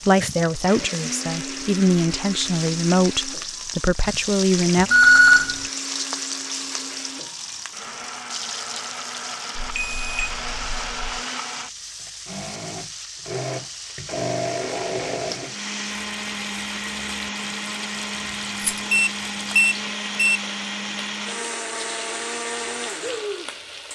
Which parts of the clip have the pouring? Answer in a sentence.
You can't hear the pouring here.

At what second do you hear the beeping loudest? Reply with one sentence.
The volume of the beeping peaks at 5 seconds.